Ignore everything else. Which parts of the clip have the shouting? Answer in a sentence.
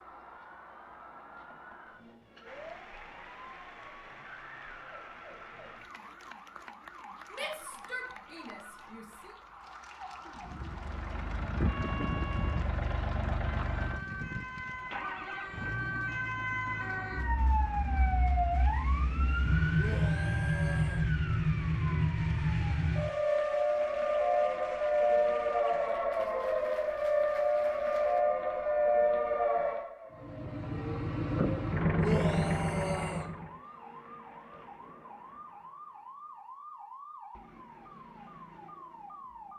The shouting can be heard from 7.3 to 9.3 s, from 19.8 to 21.1 s and from 31.9 to 33.2 s.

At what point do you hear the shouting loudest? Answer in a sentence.
The loudest moment of the shouting is at 32 seconds.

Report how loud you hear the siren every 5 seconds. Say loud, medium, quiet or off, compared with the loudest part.
quiet, quiet, quiet, medium, loud, loud, quiet, quiet.